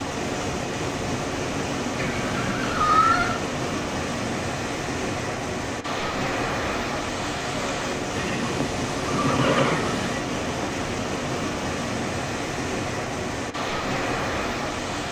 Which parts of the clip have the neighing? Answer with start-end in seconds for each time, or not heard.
1.9-3.4, 8.1-10.2.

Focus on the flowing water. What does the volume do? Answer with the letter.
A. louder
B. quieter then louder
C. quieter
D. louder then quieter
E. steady
E.